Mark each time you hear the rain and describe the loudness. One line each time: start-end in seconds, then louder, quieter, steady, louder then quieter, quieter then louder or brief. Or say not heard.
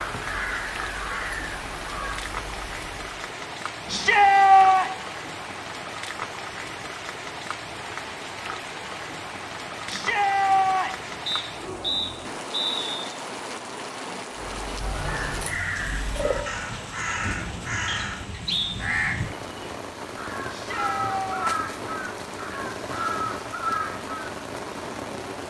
0.0-25.4 steady.